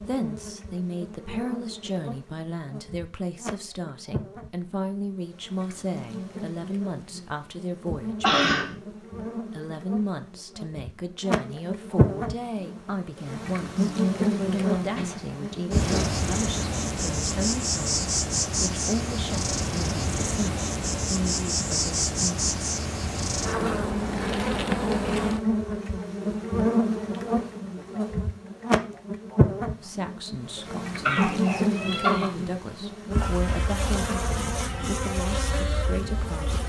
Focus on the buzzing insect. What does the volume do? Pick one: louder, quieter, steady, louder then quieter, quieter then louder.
louder.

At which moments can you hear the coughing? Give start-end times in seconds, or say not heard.
8.2-8.7, 14.8-16.1, 31.1-32.3.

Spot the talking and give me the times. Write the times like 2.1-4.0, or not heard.
0.0-22.4, 29.8-36.6.